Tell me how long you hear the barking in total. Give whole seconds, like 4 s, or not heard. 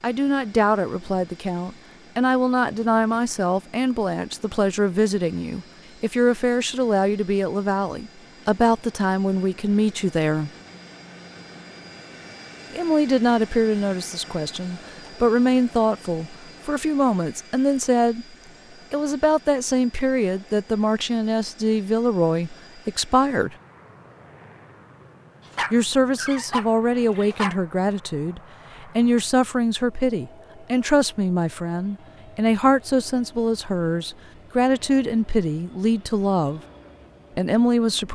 2 s.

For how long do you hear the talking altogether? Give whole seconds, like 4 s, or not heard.
32 s.